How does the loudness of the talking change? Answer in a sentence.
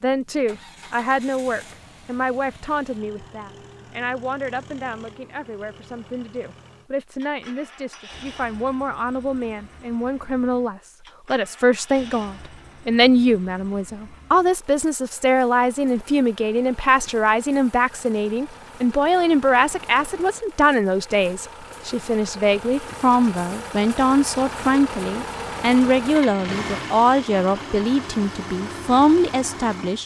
The loudness of the talking goes up.